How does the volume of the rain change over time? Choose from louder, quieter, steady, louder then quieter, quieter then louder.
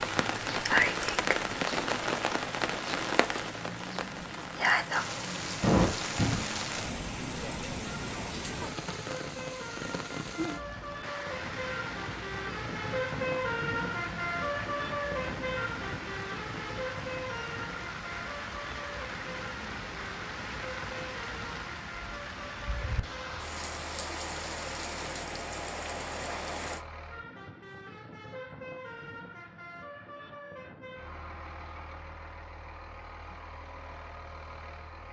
quieter.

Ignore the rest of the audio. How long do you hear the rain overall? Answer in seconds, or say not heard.
27 s.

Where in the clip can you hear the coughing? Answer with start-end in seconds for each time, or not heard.
5.6-6.5.